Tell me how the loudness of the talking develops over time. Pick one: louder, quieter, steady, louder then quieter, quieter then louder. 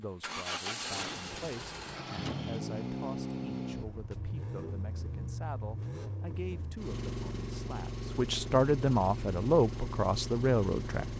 louder.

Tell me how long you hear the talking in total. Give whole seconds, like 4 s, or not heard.
11 s.